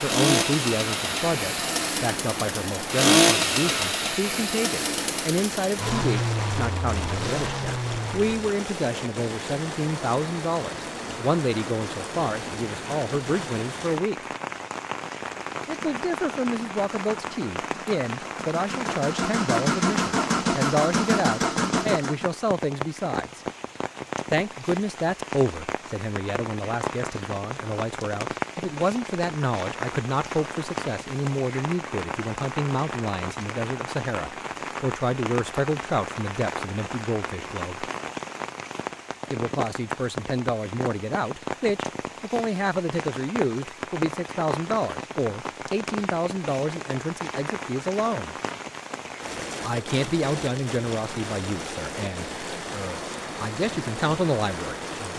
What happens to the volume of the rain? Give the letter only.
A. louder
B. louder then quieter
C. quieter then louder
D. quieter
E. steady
E.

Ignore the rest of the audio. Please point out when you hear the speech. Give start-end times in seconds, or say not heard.
0.0-14.2, 15.7-23.4, 24.3-37.9, 39.3-48.4, 49.6-55.1.